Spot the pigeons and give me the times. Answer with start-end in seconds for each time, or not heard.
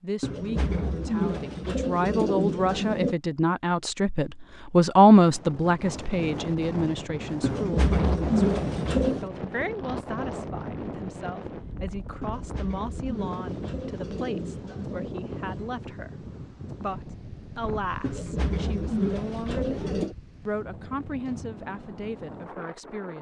0.2-3.1, 7.4-9.3, 12.2-15.1, 18.0-20.1.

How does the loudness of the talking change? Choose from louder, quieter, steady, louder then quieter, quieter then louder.
louder then quieter.